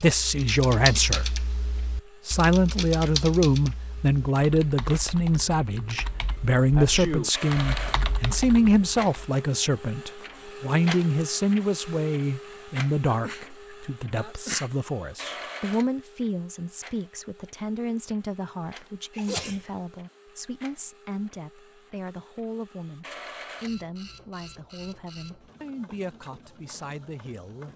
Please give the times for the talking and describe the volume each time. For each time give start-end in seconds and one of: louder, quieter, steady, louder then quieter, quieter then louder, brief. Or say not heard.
0.0-1.4 brief
2.2-27.7 quieter.